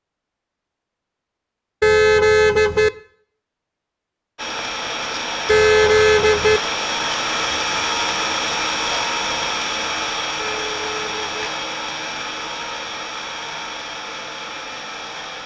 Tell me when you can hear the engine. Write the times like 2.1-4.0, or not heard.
4.3-15.4.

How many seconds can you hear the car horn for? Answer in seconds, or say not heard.
3 s.